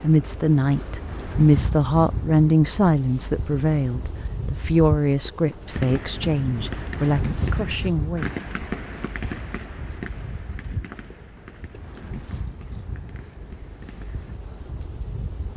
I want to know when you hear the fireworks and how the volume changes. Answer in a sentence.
The fireworks can be heard from 5.7 to 14.4 s, getting quieter.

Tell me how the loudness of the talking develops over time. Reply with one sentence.
The volume of the talking goes down.